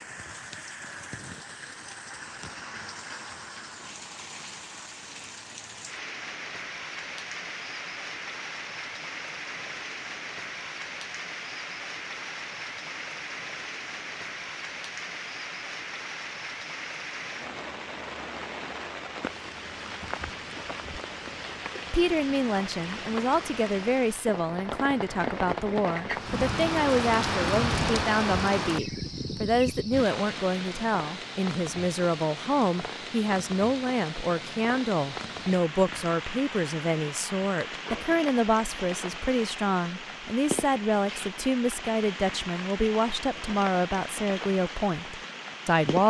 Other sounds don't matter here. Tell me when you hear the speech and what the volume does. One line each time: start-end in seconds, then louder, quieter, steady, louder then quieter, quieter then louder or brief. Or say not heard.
21.9-46.0 steady.